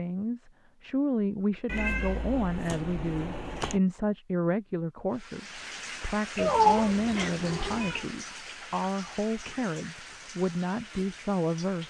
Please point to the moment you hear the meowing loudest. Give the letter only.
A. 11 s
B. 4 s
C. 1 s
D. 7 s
D.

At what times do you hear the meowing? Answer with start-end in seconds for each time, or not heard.
1.6-3.8, 6.3-8.1.